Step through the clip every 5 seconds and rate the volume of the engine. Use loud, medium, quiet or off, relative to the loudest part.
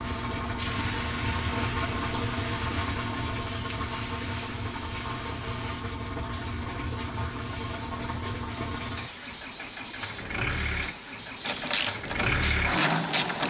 loud, medium, loud.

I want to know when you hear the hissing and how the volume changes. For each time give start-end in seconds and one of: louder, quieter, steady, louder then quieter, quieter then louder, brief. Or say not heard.
0.0-13.4 quieter then louder.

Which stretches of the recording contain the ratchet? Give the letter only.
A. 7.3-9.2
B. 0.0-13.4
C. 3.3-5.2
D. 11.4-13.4
D.